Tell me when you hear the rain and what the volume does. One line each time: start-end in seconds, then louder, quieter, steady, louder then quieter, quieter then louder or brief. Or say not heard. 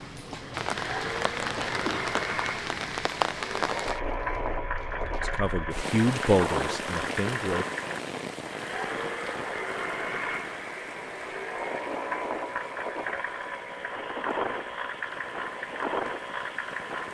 0.0-17.0 quieter.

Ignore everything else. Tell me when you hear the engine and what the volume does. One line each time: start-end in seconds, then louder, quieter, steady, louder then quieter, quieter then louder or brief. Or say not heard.
0.0-17.0 steady.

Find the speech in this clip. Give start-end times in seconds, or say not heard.
5.2-7.7.